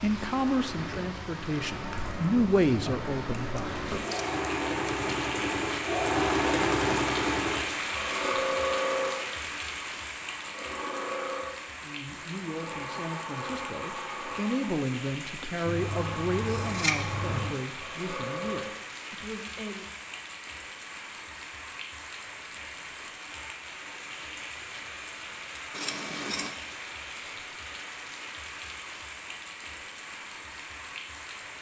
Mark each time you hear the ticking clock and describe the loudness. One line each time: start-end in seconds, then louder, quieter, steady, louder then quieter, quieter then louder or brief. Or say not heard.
not heard.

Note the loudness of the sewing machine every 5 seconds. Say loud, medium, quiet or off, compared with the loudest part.
medium, loud, medium, medium, off, off, off.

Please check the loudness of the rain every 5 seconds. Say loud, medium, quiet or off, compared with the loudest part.
medium, loud, medium, medium, medium, medium, medium.